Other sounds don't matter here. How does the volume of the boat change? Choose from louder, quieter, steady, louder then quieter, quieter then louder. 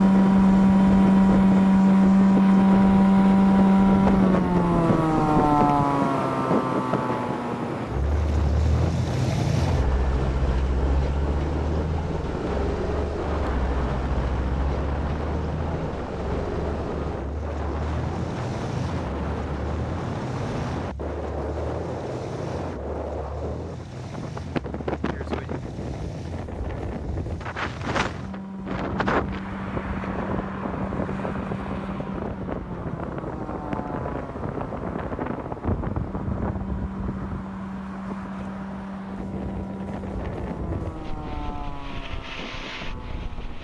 quieter.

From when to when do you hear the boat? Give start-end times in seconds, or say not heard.
0.0-43.5.